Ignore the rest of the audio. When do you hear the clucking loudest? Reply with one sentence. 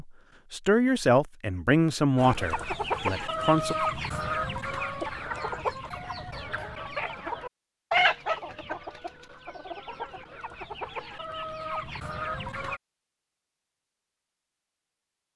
The volume of the clucking peaks at 8 seconds.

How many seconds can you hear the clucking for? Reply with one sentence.
The clucking can be heard for 11 seconds in total.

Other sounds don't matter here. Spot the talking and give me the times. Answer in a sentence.
The talking can be heard from 0.0 to 3.8 s.